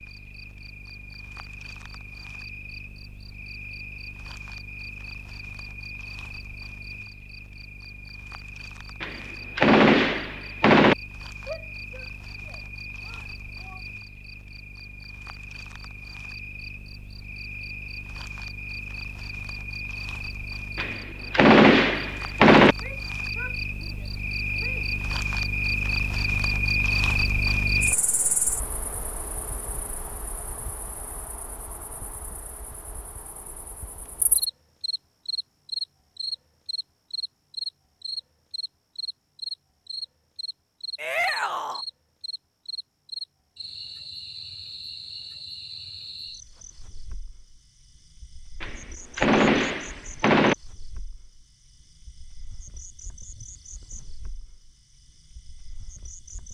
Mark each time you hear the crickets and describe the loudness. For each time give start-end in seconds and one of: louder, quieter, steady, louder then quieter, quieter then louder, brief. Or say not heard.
0.0-56.4 louder then quieter.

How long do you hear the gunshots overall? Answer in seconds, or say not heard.
6 s.